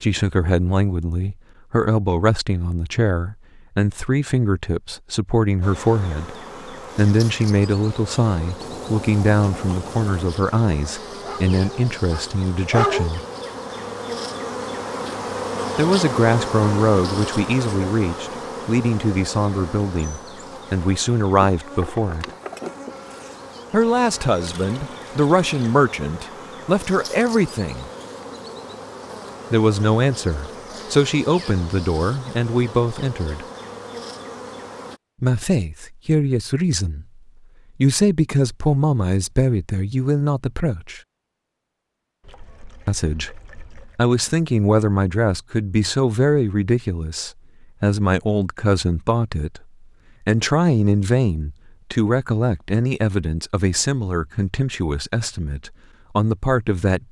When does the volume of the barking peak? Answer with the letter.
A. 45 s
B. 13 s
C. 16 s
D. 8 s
B.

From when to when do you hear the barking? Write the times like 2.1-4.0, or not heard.
11.2-13.1.